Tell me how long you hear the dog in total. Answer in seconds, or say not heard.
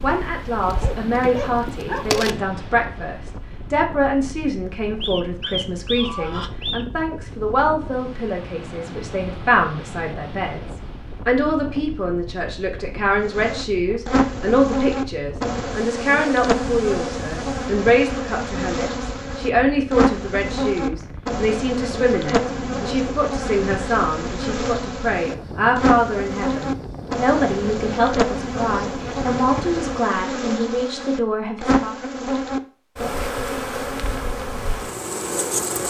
2 s.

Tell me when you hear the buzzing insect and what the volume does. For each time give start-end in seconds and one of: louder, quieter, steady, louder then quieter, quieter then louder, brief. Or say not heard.
0.0-2.4 brief
13.2-35.8 steady.